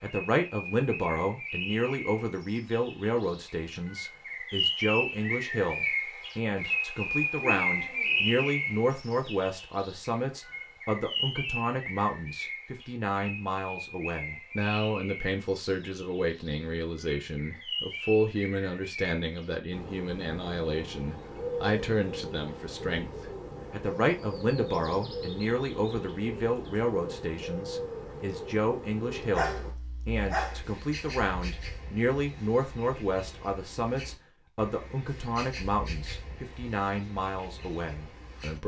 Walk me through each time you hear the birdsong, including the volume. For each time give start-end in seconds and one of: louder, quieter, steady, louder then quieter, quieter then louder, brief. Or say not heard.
0.0-38.6 quieter.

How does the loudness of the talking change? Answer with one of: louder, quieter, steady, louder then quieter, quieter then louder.
steady.